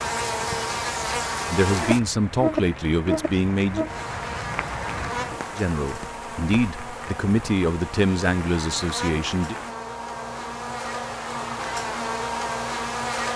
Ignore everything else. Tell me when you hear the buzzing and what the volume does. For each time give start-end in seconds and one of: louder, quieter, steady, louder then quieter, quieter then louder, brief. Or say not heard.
0.0-13.3 quieter then louder.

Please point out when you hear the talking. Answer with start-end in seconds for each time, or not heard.
1.4-3.9, 5.5-9.6.